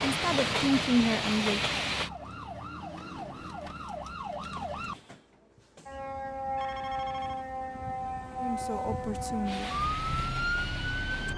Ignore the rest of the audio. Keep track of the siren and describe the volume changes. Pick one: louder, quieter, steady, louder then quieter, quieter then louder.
louder.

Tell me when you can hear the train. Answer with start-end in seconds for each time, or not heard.
0.0-2.1, 9.4-11.3.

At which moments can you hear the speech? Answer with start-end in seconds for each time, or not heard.
0.1-1.8, 8.3-9.8.